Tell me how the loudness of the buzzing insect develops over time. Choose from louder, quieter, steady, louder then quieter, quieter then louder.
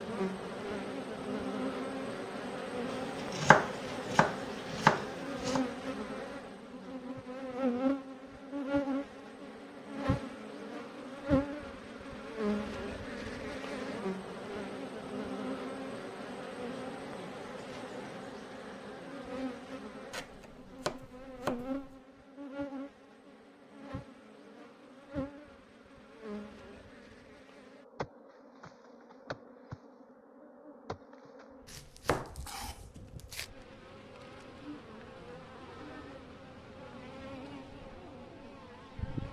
quieter.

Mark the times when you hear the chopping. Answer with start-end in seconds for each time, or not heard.
2.9-5.6, 20.1-21.9, 31.6-33.5.